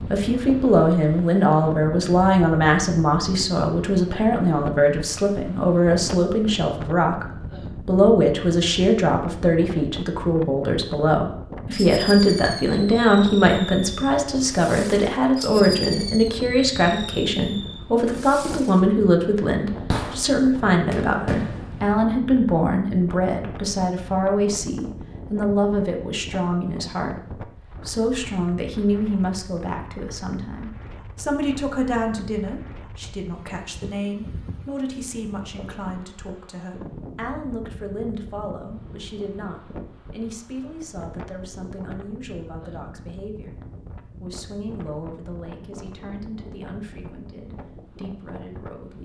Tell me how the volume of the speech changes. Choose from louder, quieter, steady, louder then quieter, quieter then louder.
quieter.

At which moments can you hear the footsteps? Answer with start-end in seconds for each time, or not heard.
not heard.